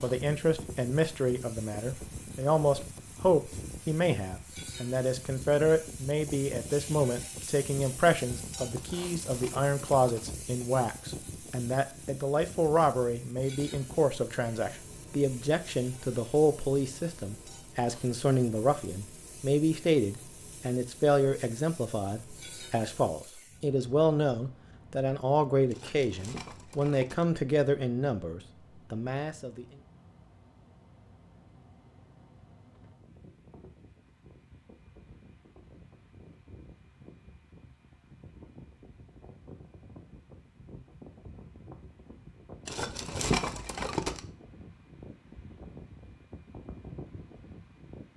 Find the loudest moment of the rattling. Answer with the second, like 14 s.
43 s.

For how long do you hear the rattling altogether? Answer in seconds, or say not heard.
5 s.